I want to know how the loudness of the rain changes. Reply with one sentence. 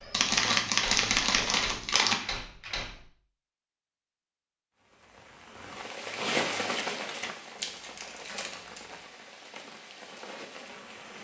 The volume of the rain goes up, then down.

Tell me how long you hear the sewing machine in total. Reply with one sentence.
You can't hear the sewing machine here.